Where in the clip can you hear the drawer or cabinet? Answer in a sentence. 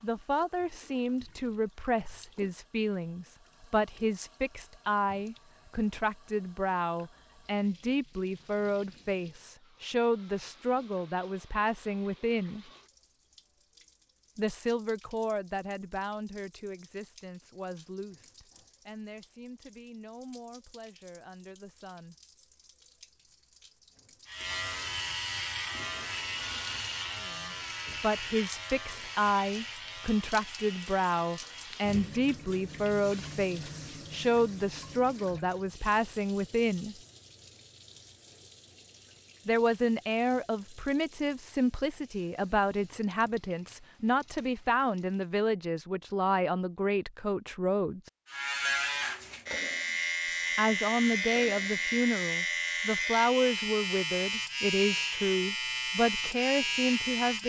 You can't hear the drawer or cabinet here.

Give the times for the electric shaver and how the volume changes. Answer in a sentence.
You can hear the electric shaver from 24.2 to 32.2 s, getting quieter; and from 48.2 to 57.4 s, at a steady volume.